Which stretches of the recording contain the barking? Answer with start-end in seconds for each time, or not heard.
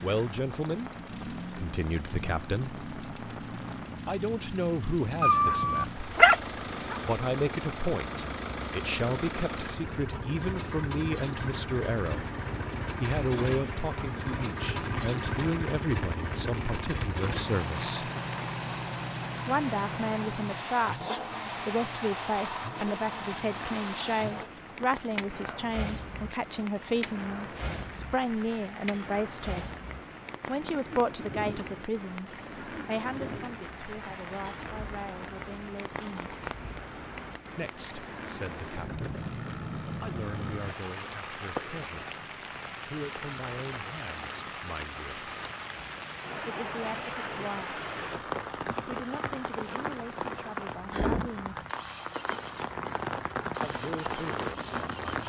5.2-7.2.